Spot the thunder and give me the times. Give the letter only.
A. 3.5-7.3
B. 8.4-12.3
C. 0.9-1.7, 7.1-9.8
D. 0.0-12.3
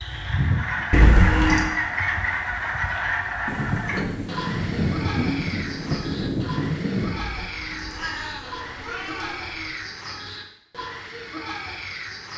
A.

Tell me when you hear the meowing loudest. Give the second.
1 s.